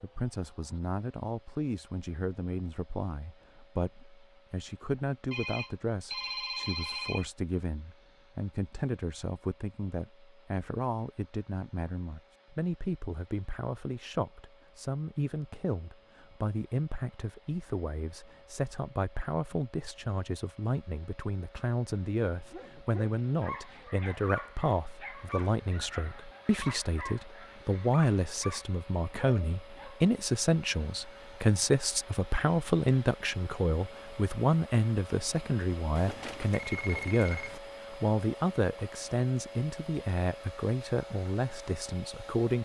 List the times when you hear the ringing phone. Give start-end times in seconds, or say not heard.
5.3-7.2, 36.0-37.6.